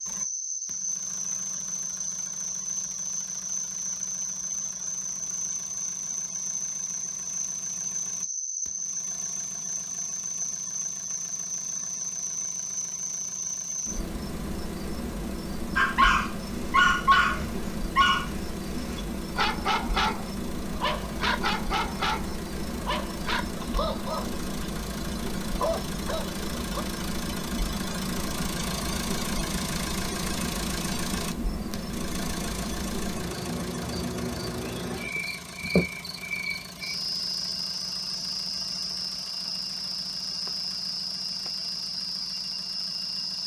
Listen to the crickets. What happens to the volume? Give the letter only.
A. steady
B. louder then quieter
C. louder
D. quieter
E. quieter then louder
A.